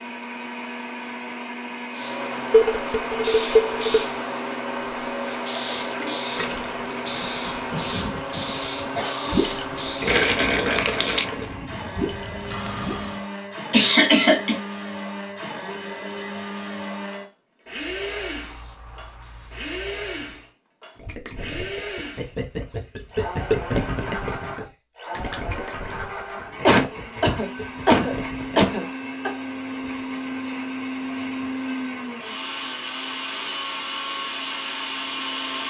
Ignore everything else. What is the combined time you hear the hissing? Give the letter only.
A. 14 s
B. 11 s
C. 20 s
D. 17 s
A.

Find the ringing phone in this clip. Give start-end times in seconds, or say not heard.
not heard.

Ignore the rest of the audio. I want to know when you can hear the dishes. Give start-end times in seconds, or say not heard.
2.5-4.0.